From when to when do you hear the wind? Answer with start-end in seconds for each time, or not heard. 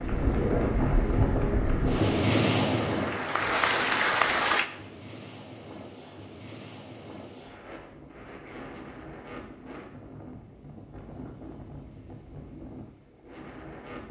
0.0-14.0.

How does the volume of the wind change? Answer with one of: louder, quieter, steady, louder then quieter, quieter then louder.
quieter.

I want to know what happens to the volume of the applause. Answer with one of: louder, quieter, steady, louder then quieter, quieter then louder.
louder.